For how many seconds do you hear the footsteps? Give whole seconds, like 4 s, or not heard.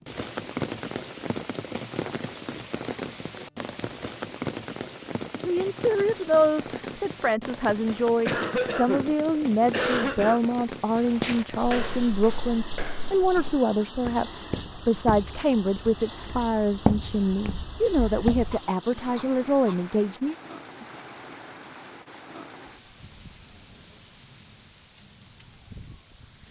8 s.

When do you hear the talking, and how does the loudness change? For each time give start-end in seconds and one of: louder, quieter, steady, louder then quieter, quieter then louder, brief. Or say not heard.
5.5-20.4 steady.